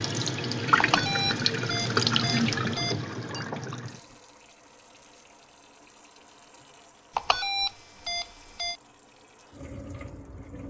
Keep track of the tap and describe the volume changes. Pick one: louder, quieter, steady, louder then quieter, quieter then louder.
quieter then louder.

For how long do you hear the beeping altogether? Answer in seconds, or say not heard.
4 s.